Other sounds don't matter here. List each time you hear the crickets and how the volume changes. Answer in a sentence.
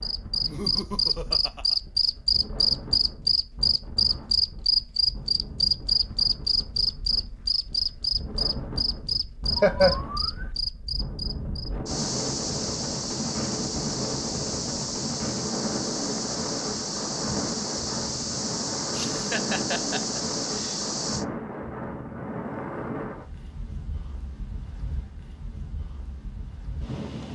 The crickets can be heard from 0.0 to 21.2 s, getting quieter.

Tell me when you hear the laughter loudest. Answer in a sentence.
The loudest moment of the laughter is at 10 seconds.